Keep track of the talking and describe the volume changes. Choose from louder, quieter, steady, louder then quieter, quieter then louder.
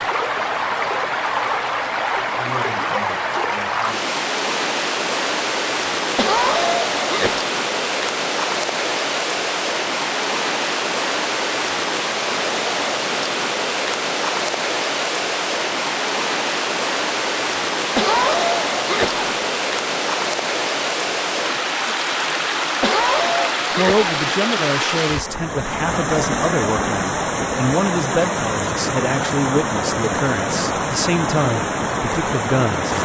steady.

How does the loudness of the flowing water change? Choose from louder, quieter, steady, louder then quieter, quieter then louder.
steady.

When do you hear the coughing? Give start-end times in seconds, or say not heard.
6.2-7.5, 17.9-19.2, 22.8-24.1.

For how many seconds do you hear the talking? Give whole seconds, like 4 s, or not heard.
9 s.